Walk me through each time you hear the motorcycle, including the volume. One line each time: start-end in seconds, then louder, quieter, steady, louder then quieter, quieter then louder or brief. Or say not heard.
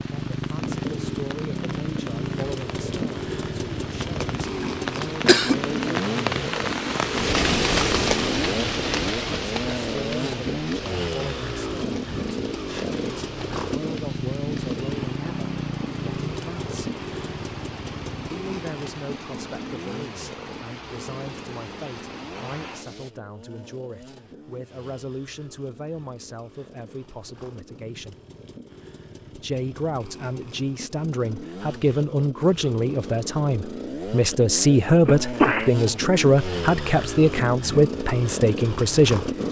0.0-39.4 quieter then louder.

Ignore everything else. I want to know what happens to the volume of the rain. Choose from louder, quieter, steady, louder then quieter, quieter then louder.
louder then quieter.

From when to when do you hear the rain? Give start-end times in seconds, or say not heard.
0.0-23.1.